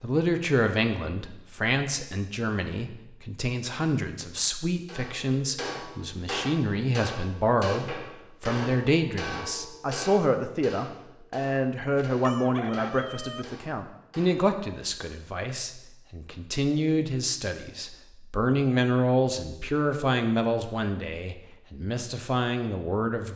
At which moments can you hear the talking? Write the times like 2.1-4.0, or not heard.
0.0-23.3.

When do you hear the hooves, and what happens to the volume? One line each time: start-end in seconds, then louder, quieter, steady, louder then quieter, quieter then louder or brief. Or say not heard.
not heard.